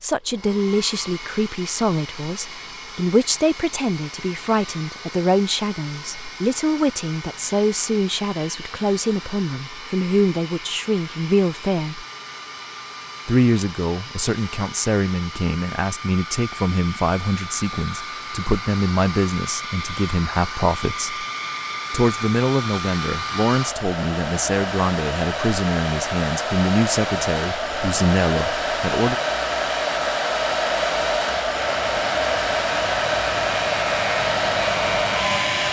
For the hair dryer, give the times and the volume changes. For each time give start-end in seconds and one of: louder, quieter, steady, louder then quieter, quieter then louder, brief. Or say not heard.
0.0-35.6 louder.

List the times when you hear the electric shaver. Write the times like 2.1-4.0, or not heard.
31.6-35.6.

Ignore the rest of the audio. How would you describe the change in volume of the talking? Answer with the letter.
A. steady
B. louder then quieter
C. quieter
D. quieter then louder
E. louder
A.